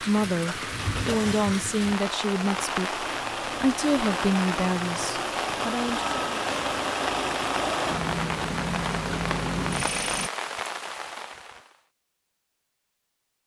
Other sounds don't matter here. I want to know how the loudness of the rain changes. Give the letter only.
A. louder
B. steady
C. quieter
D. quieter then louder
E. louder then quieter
B.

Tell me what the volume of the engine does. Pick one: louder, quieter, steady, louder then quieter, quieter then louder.
louder.